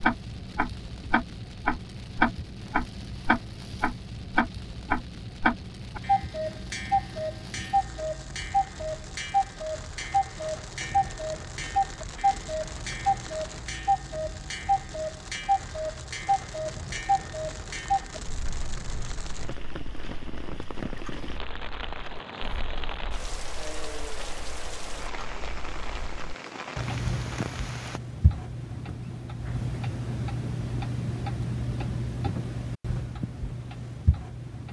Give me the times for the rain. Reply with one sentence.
You can hear the rain from 0.0 to 28.0 s.